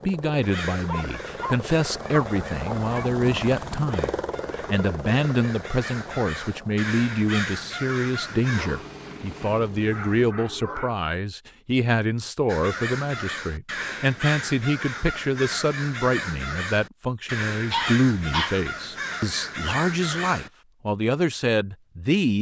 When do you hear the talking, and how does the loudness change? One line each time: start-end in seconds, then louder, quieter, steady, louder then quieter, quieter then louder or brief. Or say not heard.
0.1-22.3 steady.